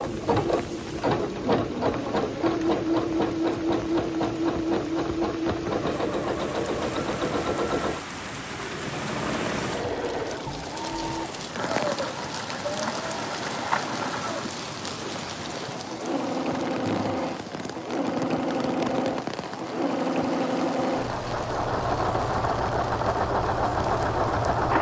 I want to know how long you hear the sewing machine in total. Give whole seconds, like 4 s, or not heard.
25 s.